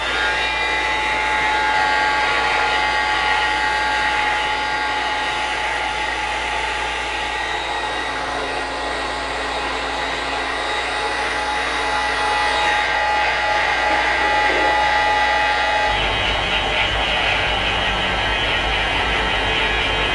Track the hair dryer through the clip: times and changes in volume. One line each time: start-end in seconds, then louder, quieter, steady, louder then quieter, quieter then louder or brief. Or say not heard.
0.0-20.0 steady.